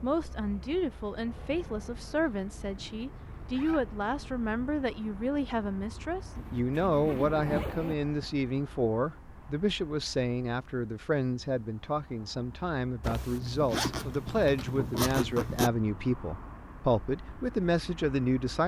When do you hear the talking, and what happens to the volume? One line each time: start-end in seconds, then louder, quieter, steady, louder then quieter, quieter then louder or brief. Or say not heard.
0.0-18.6 steady.